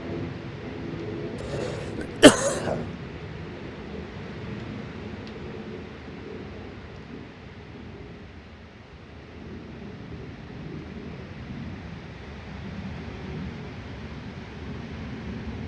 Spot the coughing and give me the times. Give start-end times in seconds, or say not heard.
1.5-2.9.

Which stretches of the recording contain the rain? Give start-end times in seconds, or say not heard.
0.0-15.6.